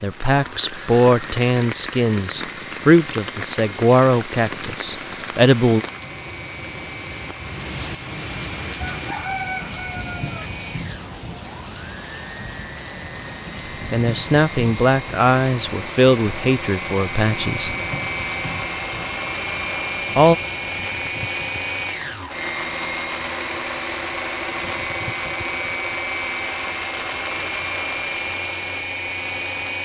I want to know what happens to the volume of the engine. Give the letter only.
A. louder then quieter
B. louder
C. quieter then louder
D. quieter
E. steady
B.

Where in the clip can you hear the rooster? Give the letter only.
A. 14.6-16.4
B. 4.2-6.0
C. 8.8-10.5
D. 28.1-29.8
C.